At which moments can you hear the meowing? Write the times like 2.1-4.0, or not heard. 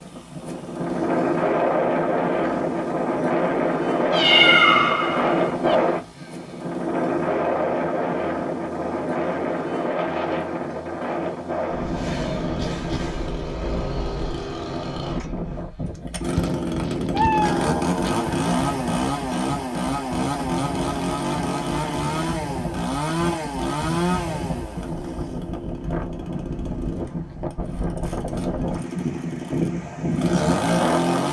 4.1-5.8, 16.4-18.3.